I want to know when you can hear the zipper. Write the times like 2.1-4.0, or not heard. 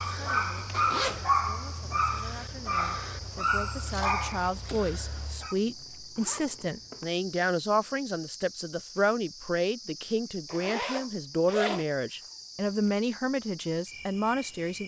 0.7-1.3, 5.5-7.0, 10.4-11.8.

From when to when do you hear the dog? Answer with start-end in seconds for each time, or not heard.
0.0-5.5.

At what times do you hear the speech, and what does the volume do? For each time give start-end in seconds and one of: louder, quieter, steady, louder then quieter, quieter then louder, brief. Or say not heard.
0.0-14.8 louder.